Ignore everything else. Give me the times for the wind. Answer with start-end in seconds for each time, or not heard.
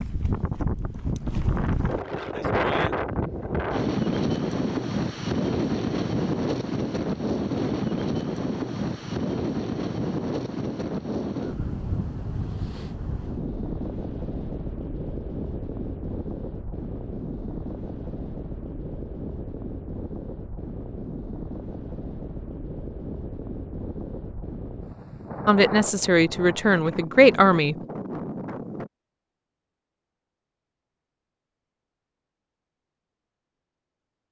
0.0-28.9.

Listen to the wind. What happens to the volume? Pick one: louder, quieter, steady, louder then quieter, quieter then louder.
quieter.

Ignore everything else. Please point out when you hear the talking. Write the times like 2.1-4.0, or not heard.
25.4-27.8.